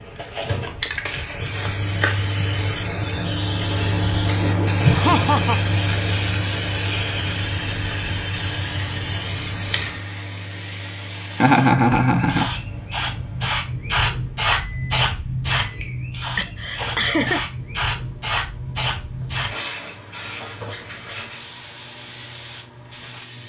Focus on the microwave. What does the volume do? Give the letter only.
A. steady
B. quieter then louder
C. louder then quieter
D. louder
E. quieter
E.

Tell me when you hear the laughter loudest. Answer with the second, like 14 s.
12 s.